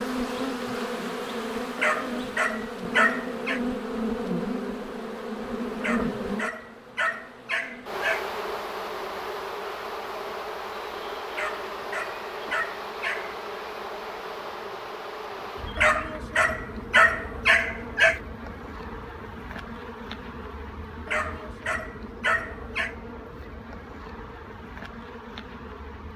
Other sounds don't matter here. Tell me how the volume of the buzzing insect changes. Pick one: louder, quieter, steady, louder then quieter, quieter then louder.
quieter.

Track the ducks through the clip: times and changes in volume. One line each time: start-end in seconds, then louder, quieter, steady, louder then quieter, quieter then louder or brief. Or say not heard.
not heard.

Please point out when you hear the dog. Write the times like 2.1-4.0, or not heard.
1.8-3.6, 5.8-8.2, 11.3-13.3, 15.8-18.2, 21.1-22.9.